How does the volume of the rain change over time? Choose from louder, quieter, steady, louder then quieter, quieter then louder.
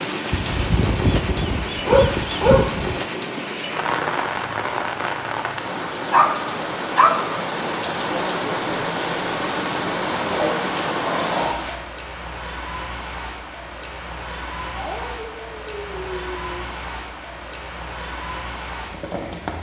quieter.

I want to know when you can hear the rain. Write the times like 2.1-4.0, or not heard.
0.0-19.5.